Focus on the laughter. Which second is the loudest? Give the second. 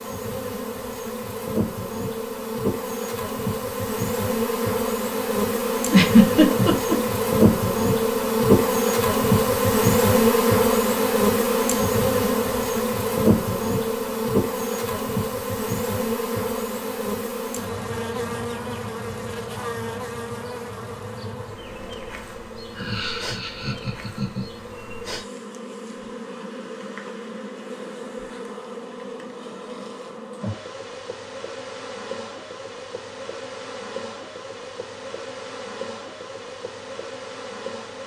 6 s.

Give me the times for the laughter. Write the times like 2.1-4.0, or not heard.
5.9-7.0, 22.8-24.4.